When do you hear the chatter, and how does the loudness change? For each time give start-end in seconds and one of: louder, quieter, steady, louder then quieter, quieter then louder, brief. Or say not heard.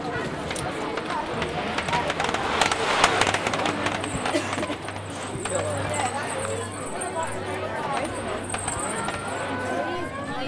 0.0-10.4 steady.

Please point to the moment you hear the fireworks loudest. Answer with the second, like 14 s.
3 s.